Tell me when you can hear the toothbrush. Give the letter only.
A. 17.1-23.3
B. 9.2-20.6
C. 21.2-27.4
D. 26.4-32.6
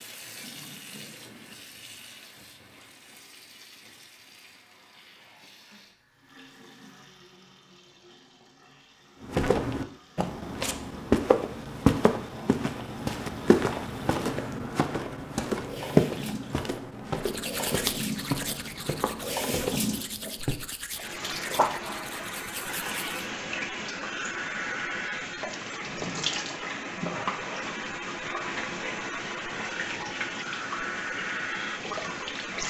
A.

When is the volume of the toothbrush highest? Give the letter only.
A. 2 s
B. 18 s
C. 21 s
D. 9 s
B.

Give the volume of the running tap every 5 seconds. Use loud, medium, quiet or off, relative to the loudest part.
quiet, quiet, quiet, loud, loud, loud, loud.